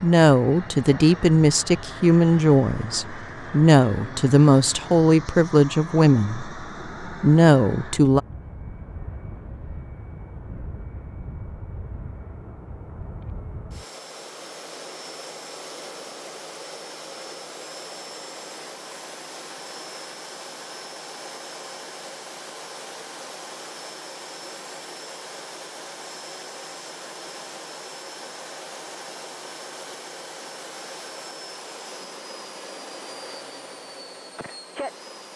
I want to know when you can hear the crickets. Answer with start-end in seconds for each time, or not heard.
not heard.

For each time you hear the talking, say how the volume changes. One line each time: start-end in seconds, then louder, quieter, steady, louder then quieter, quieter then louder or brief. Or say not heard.
0.0-8.2 steady.